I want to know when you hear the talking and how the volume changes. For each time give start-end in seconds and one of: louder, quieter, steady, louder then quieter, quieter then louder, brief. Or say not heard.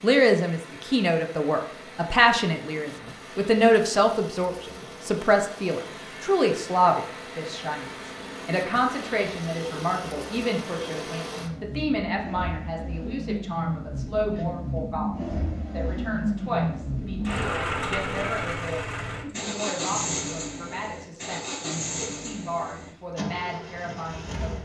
0.0-24.5 quieter.